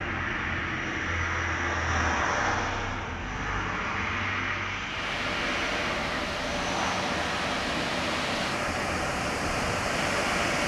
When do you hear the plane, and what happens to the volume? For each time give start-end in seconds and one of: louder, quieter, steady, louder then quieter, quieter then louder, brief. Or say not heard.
0.0-10.6 quieter.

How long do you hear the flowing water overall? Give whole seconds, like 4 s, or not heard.
6 s.